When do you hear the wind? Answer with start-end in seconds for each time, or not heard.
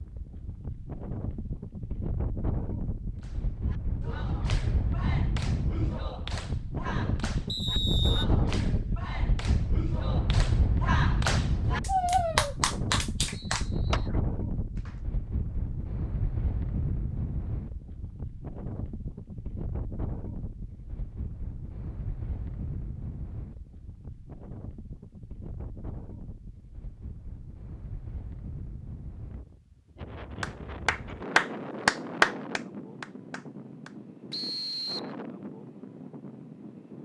0.0-37.0.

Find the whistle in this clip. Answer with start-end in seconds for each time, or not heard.
7.5-8.2, 13.3-14.1, 34.3-35.1.